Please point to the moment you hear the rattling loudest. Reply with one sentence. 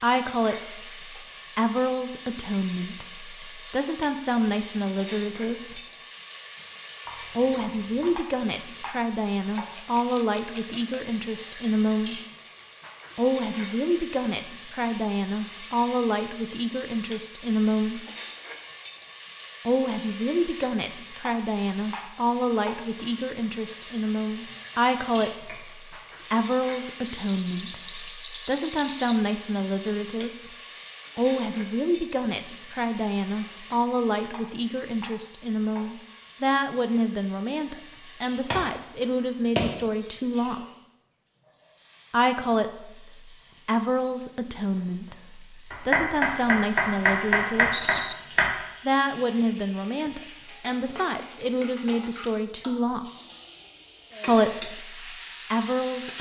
The volume of the rattling peaks at 48 seconds.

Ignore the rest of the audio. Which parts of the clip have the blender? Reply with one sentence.
The blender can't be heard in this clip.